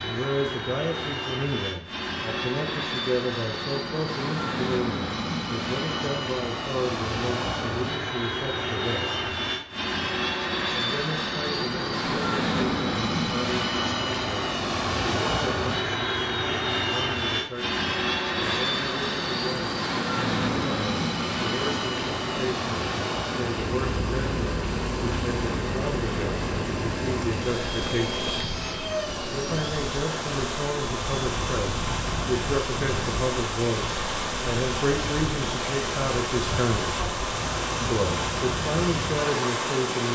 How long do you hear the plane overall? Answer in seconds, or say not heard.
40 s.